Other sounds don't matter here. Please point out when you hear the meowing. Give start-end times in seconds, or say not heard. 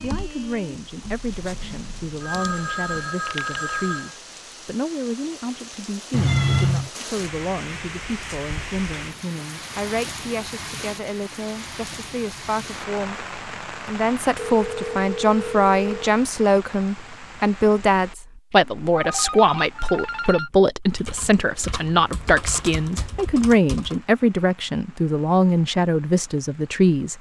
6.1-6.9.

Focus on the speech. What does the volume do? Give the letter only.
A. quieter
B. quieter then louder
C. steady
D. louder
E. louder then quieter
D.